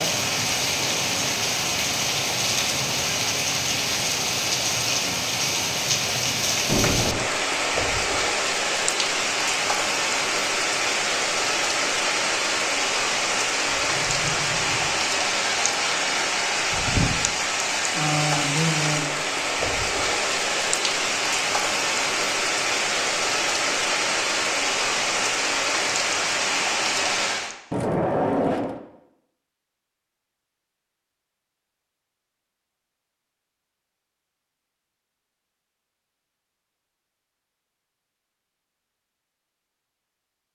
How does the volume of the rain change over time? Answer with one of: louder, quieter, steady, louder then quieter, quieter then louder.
steady.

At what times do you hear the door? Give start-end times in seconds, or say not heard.
6.7-7.3, 13.7-15.0, 27.7-28.8.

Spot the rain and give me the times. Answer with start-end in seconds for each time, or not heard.
0.0-27.6.